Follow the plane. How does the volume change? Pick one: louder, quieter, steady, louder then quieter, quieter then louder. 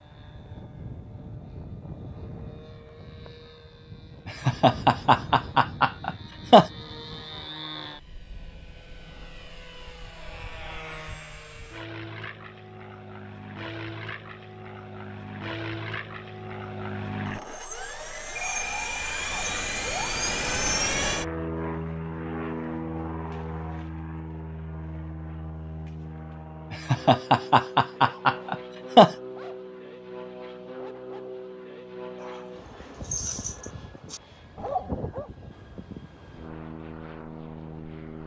louder then quieter.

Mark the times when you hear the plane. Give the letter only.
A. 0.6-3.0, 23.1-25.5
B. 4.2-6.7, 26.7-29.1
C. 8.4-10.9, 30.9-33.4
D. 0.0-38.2
D.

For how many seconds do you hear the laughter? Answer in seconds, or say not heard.
5 s.